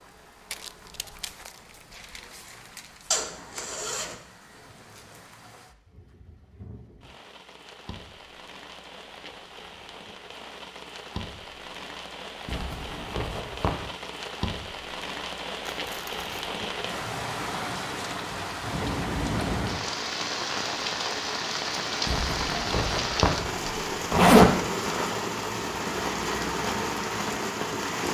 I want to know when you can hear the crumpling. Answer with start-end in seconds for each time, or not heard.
0.5-3.1, 15.7-16.6.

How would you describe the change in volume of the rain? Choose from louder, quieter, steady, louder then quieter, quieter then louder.
louder.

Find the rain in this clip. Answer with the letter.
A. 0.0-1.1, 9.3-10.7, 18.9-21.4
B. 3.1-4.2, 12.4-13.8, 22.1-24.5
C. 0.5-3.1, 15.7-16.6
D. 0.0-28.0
D.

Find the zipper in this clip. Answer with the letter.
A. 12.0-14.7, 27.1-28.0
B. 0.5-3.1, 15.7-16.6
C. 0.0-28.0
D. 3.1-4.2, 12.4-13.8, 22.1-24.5
D.